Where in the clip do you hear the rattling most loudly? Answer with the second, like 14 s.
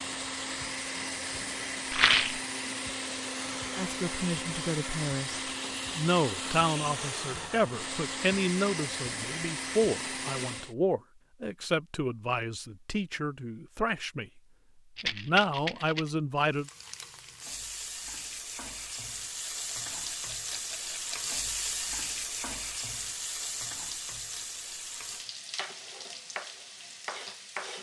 2 s.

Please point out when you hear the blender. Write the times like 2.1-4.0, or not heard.
0.0-10.8.